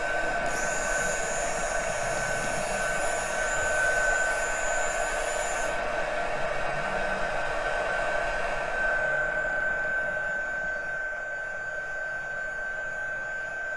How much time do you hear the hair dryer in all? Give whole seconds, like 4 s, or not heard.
14 s.